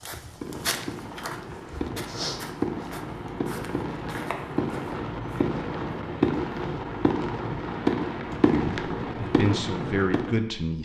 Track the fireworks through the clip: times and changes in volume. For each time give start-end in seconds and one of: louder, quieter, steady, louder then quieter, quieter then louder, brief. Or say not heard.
0.1-10.4 louder.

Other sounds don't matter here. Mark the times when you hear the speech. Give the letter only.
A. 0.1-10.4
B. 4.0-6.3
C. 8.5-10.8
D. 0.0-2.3
C.